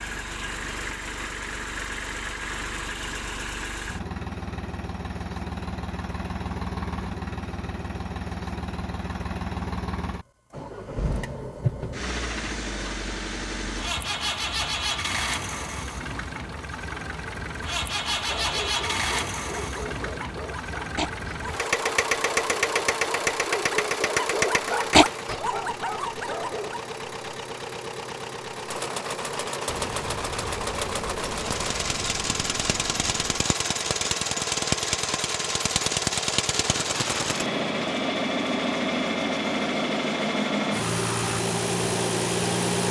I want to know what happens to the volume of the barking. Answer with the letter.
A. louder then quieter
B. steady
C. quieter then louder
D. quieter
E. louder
A.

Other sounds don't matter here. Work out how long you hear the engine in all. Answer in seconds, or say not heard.
43 s.